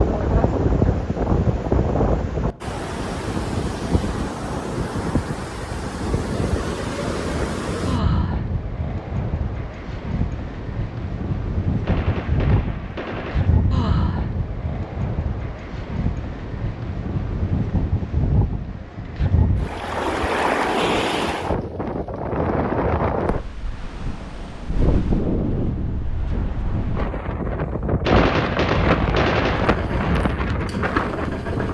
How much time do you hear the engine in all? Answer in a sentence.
The engine can be heard for 2 seconds in total.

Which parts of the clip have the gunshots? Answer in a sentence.
You can hear the gunshots from 11.8 to 13.6 s and from 28.0 to 29.8 s.